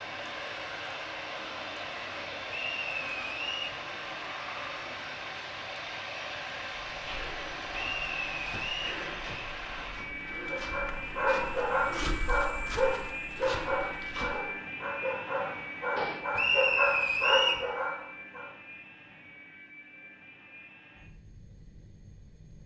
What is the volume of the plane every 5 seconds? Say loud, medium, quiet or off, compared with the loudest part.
loud, loud, loud, medium, quiet.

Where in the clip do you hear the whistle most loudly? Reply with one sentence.
The loudest moment of the whistle is at 17 seconds.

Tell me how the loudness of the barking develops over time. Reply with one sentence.
The volume of the barking goes down, then up.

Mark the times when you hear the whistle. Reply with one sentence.
The whistle can be heard from 2.5 to 3.8 s, from 7.7 to 9.0 s and from 16.4 to 17.6 s.